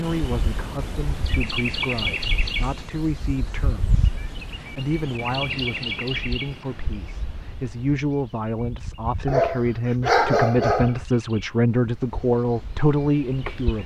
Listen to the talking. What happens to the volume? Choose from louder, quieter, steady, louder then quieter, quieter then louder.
louder.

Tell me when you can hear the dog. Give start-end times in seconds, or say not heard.
9.2-10.9.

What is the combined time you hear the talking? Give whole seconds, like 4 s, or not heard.
14 s.